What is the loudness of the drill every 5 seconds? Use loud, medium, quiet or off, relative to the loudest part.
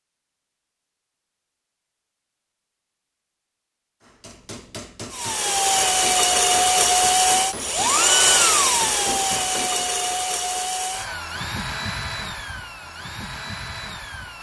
off, loud, medium.